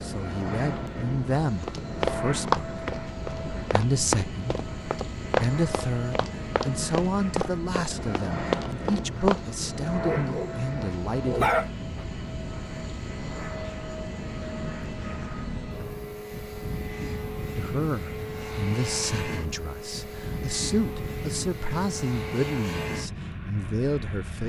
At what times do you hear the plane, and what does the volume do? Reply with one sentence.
You can hear the plane from 0.0 to 24.4 s, at a steady volume.